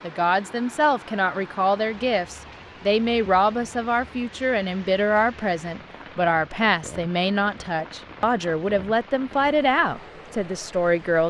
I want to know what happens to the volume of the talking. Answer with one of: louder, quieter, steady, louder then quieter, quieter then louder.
steady.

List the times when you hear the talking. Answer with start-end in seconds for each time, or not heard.
0.0-11.2.